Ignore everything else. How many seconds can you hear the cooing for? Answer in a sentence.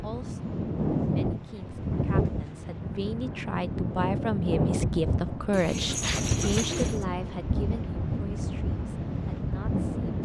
The cooing can be heard for 3 seconds in total.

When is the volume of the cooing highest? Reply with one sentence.
The loudest moment of the cooing is at 6 seconds.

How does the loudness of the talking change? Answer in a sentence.
The volume of the talking goes up, then down.